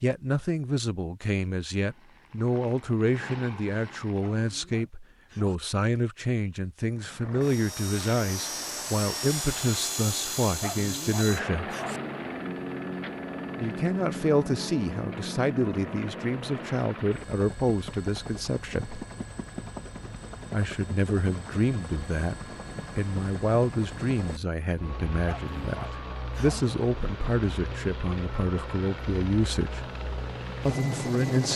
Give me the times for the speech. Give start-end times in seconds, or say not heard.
0.0-11.7, 13.6-19.0, 20.5-22.4, 22.9-29.9, 30.6-31.5.